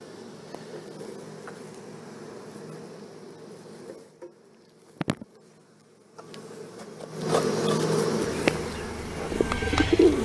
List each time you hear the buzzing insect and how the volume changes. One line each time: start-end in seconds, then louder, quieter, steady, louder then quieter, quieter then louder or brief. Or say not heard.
0.0-10.2 louder.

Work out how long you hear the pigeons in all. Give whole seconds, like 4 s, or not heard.
2 s.